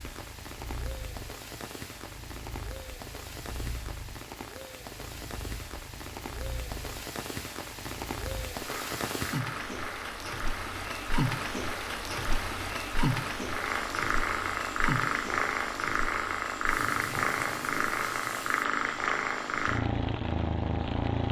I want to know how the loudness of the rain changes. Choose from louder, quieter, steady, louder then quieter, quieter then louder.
louder then quieter.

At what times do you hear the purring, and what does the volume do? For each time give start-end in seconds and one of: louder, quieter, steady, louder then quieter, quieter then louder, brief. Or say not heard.
0.0-21.2 louder.